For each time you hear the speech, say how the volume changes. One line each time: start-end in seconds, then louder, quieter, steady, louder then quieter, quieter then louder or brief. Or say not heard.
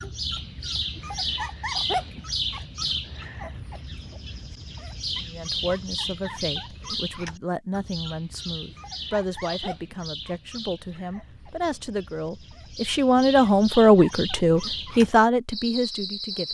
5.2-16.4 louder.